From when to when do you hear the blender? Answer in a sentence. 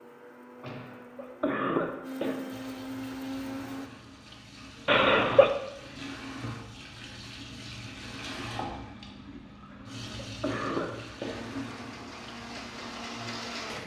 You can hear the blender from 0.0 to 3.9 s and from 11.4 to 13.8 s.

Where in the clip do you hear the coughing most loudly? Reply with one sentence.
The loudest moment of the coughing is at 5 seconds.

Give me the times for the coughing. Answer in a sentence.
You can hear the coughing from 0.7 to 2.6 s, from 4.8 to 5.5 s and from 9.7 to 11.6 s.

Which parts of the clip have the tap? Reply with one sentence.
The tap can be heard from 2.5 to 13.8 s.